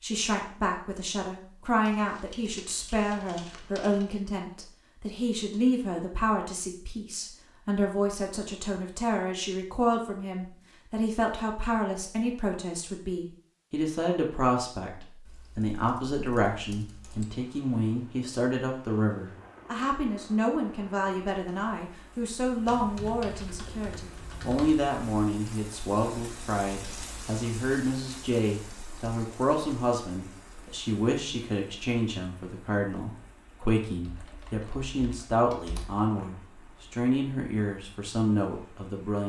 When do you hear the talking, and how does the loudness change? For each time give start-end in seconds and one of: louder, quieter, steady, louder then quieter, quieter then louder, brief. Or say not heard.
0.0-39.2 steady.